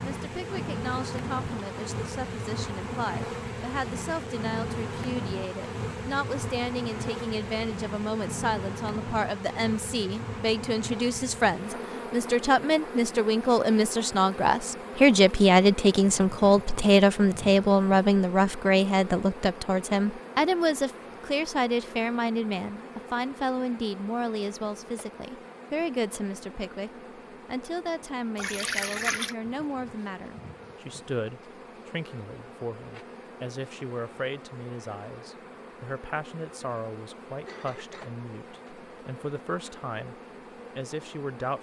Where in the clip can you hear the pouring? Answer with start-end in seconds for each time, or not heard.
28.4-29.4.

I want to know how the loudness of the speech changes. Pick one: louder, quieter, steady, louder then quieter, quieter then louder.
louder then quieter.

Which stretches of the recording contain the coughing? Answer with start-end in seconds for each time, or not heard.
37.5-38.7.